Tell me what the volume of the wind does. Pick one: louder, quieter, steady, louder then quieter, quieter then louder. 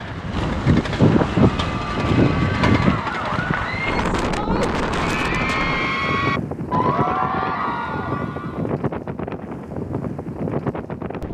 quieter.